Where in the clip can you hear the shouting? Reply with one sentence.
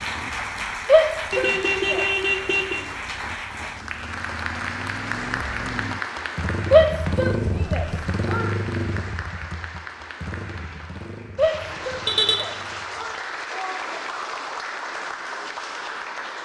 You can hear the shouting from 0.8 to 2.0 s, from 6.7 to 8.5 s and from 11.3 to 13.8 s.